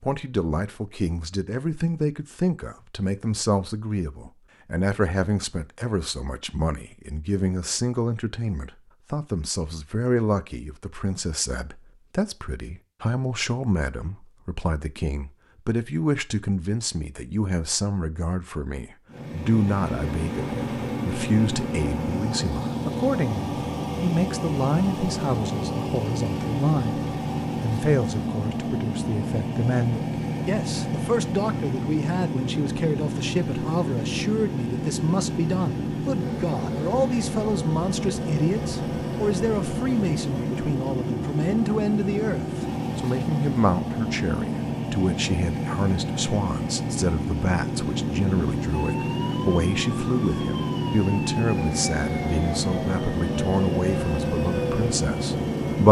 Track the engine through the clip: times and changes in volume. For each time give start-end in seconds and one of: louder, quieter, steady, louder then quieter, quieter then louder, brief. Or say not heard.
19.1-55.8 steady.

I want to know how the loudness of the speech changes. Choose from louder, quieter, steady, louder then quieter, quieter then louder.
steady.